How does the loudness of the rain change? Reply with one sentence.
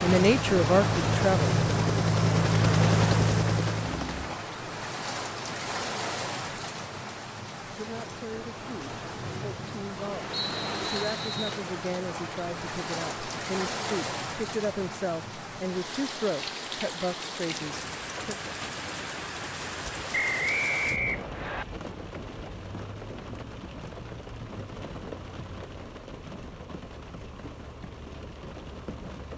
The volume of the rain goes down.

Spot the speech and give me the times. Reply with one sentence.
You can hear the speech from 0.0 to 1.6 s and from 7.7 to 18.4 s.